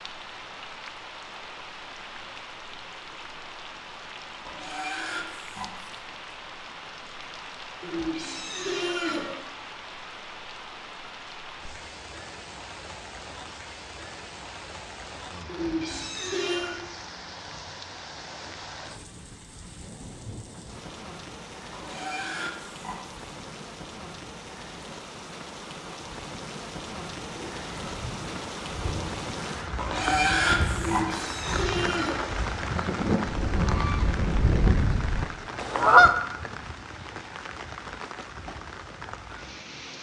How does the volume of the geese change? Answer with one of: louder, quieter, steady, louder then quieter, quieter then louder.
louder.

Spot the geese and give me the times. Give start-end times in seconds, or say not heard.
27.2-36.1.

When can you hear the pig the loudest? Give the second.
30 s.